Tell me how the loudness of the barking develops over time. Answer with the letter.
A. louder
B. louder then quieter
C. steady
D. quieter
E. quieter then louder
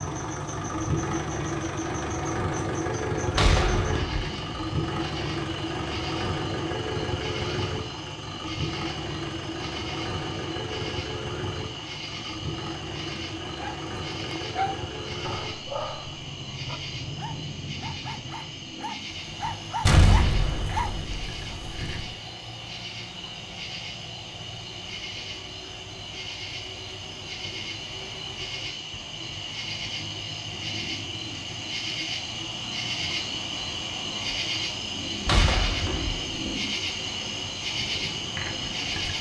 E.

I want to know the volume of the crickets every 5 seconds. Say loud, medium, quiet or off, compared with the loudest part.
medium, medium, medium, medium, medium, medium, loud, loud.